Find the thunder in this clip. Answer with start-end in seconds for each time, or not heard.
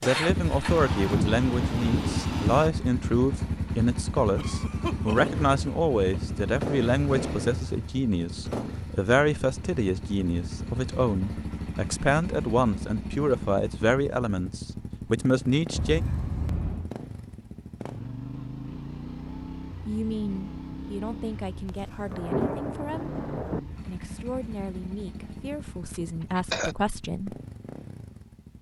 0.7-2.7, 21.6-23.6.